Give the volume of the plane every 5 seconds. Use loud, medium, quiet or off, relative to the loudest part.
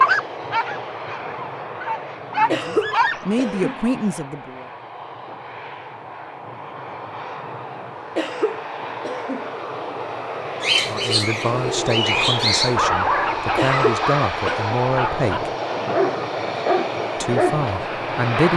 medium, medium, loud, loud.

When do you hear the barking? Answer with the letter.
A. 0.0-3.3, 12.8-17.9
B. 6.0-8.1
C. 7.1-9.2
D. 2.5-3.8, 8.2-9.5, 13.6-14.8
A.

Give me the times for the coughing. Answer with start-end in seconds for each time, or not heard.
2.5-3.8, 8.2-9.5, 13.6-14.8.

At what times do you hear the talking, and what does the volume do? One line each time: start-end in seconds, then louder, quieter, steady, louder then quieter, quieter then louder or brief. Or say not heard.
2.2-4.7 brief
10.8-15.5 quieter then louder
17.1-18.5 brief.